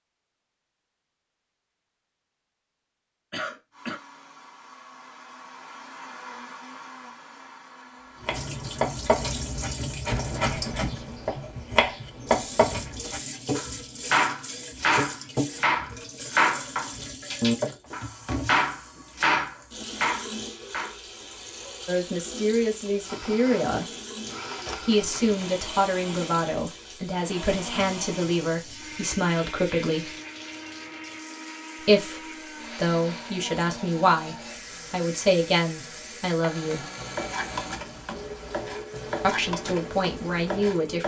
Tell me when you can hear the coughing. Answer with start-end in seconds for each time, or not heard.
3.3-4.0, 24.6-25.4.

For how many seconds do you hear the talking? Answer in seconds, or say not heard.
14 s.